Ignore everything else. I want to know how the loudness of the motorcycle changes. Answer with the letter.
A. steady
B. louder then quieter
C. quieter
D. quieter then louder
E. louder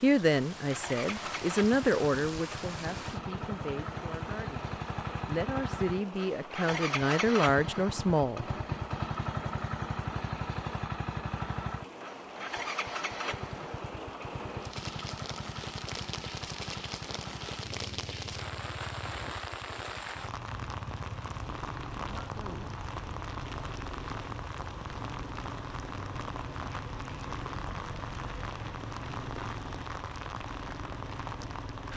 C.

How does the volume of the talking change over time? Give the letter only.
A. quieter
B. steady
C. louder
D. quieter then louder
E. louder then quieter
D.